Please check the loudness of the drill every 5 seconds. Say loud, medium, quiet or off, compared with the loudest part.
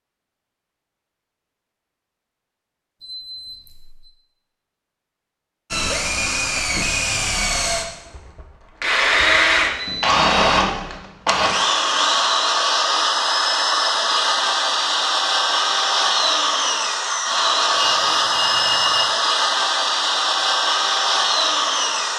off, loud, loud, loud, loud.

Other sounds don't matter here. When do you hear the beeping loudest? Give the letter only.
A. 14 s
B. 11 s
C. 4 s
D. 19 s
D.